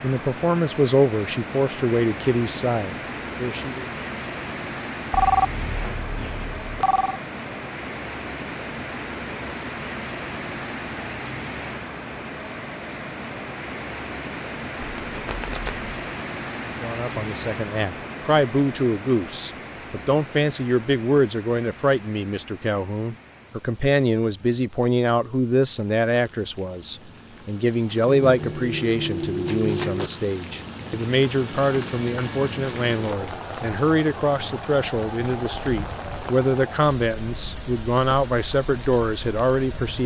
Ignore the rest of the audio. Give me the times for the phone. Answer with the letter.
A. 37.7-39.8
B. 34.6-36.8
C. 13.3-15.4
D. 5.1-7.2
D.